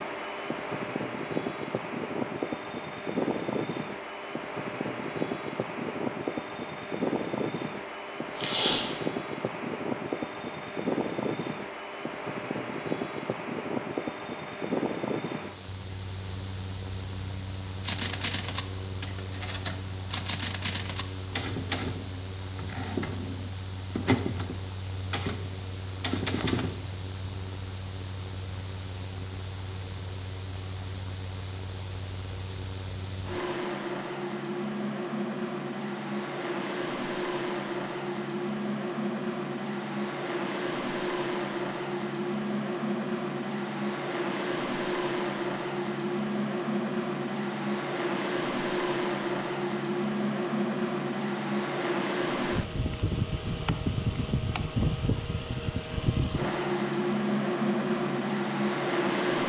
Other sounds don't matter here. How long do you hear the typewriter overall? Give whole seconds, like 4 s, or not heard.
9 s.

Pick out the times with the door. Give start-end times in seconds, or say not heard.
not heard.